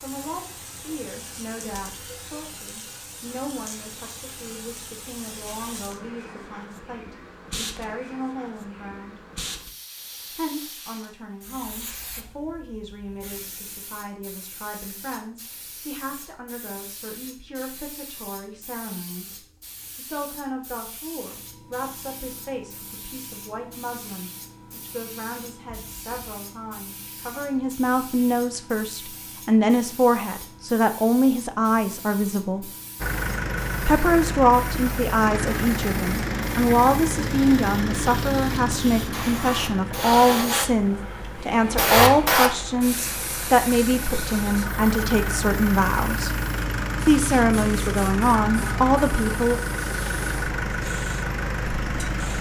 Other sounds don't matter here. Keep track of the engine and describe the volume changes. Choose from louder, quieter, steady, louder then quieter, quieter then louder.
quieter then louder.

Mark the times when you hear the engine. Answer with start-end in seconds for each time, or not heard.
33.0-52.3.